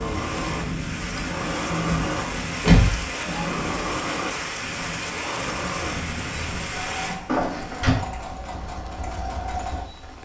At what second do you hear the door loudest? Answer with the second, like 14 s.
3 s.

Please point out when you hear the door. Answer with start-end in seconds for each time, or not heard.
1.9-3.0, 7.2-8.0.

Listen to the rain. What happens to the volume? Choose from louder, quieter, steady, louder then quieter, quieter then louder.
quieter.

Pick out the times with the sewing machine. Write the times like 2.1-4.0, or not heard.
0.0-10.2.